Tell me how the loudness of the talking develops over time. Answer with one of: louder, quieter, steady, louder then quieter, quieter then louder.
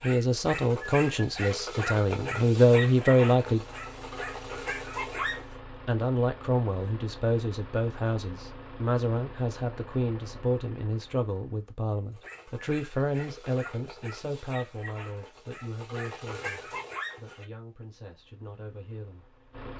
quieter.